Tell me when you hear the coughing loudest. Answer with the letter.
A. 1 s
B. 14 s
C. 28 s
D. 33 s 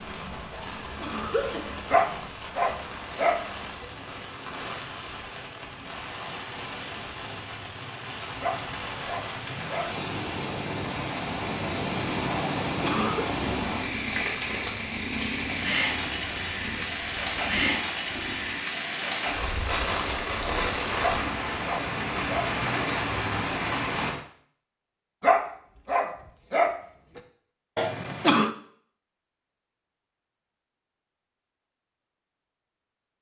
C.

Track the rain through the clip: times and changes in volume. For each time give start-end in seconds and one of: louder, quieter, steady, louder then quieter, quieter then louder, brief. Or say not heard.
0.0-24.2 louder.